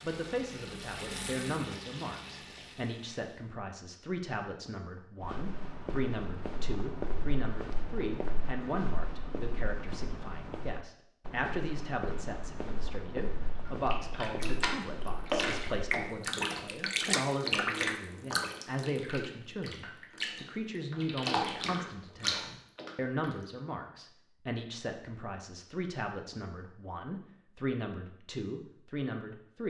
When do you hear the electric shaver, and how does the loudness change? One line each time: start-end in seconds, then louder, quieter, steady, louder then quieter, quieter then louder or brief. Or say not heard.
not heard.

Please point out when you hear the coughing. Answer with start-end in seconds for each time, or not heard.
not heard.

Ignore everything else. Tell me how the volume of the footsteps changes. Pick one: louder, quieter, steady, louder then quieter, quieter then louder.
steady.